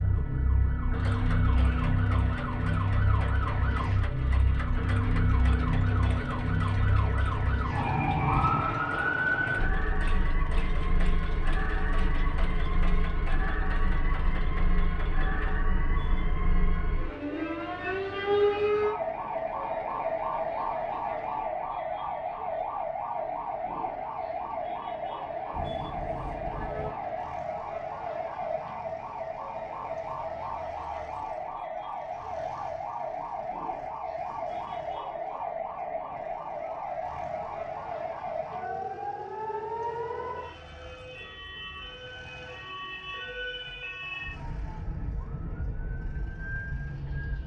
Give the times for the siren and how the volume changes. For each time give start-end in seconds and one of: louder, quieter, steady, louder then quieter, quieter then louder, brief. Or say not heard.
0.0-47.4 quieter.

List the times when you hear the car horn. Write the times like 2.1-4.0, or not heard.
15.8-16.4, 25.5-26.9.